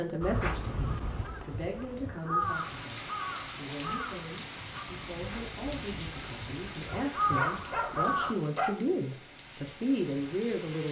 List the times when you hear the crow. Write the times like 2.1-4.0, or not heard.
0.2-8.3.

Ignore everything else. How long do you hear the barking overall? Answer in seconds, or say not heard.
2 s.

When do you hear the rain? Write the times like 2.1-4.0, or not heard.
2.4-10.8.